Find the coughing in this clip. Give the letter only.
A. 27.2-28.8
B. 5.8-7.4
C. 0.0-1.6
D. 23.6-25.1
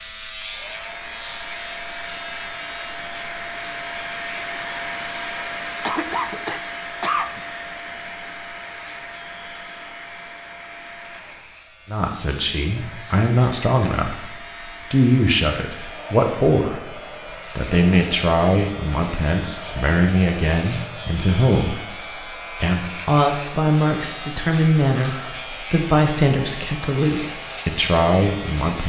B.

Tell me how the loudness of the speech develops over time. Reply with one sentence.
The loudness of the speech stays about the same.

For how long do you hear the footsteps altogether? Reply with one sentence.
You can't hear the footsteps here.